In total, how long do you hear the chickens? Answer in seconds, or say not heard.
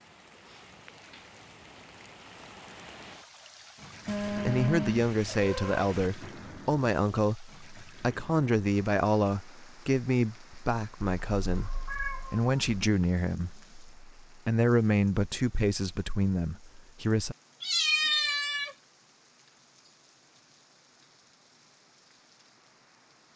not heard.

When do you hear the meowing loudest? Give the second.
18 s.